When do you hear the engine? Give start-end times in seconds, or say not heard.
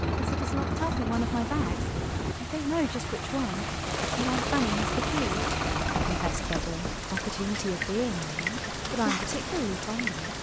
0.0-6.7.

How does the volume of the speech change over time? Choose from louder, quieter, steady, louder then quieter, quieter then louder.
steady.